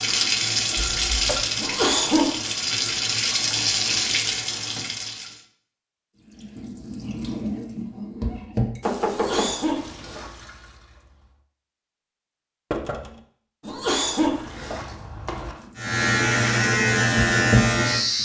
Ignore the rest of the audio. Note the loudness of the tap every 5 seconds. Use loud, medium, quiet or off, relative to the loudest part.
loud, medium, quiet, loud.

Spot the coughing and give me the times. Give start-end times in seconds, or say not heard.
1.6-2.5, 9.1-10.3, 13.7-14.8.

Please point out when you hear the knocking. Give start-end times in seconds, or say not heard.
0.8-1.4, 8.8-9.6, 12.7-13.2.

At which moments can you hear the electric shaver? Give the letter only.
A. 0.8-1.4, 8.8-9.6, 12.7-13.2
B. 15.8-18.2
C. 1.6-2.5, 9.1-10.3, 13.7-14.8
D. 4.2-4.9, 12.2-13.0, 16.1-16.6
B.